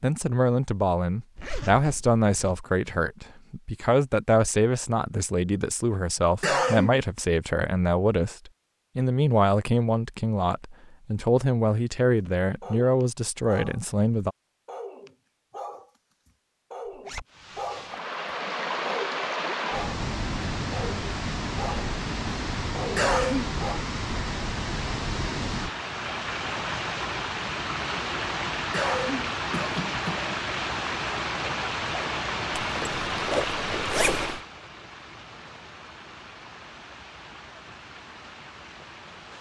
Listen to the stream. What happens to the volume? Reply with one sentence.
The volume of the stream goes down.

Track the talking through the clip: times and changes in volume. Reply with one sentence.
You can hear the talking from 0.0 to 14.3 s, at a steady volume.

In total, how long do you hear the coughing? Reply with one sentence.
The coughing can be heard for 3 seconds in total.